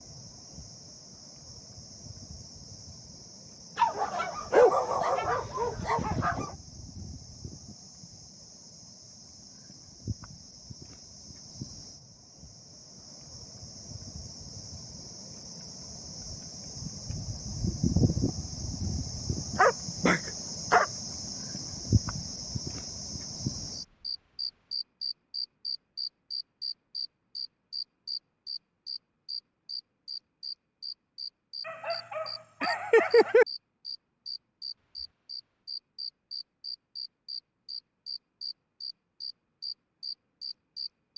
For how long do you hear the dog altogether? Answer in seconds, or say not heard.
6 s.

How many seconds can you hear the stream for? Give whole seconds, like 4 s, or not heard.
not heard.